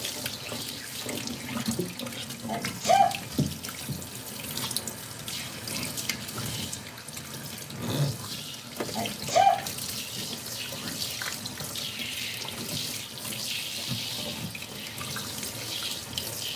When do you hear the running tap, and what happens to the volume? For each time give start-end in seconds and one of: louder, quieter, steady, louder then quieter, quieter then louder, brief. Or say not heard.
0.0-16.5 steady.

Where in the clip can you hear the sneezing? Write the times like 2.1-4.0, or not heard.
2.5-3.1, 8.9-9.6.